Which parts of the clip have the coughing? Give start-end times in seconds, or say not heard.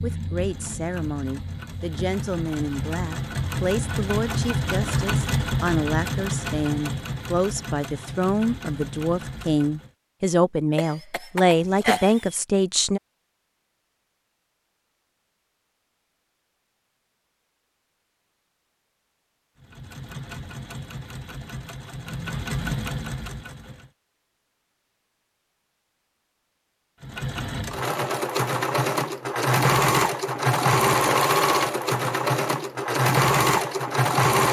10.8-12.3.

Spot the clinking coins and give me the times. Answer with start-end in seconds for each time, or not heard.
not heard.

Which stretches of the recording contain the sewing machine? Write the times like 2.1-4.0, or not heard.
0.0-9.9, 19.6-23.9, 27.0-34.4.